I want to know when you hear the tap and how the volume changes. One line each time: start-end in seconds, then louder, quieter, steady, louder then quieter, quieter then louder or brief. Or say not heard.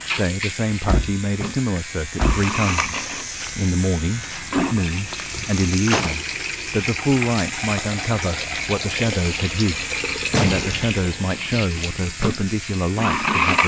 0.0-13.6 steady.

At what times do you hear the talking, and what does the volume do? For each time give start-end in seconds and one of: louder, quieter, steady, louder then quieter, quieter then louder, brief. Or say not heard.
0.1-13.6 steady.